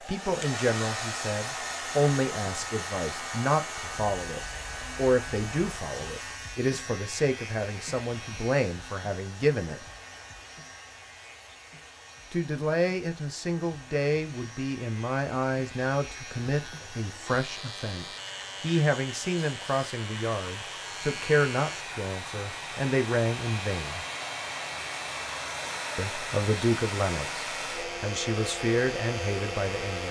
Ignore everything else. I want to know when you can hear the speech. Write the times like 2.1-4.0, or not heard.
0.1-9.8, 12.3-24.1, 25.9-30.0.